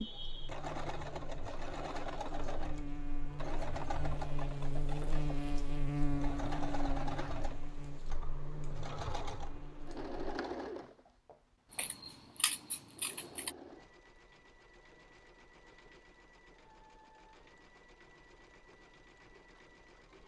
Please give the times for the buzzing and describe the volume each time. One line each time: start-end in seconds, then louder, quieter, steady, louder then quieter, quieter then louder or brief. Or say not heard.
0.1-10.4 louder then quieter.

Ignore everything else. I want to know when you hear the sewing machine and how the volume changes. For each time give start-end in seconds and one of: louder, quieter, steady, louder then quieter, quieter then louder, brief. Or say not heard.
0.0-20.2 quieter.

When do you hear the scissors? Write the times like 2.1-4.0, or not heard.
11.7-13.5.